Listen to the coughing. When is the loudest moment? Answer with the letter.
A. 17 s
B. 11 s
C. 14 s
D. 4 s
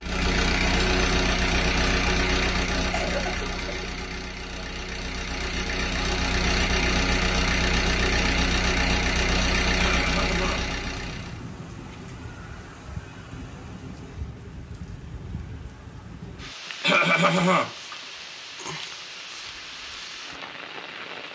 A.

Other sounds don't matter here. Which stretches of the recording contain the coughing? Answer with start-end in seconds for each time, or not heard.
2.9-3.9, 9.8-10.7, 16.8-17.9.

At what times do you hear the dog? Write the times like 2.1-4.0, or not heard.
not heard.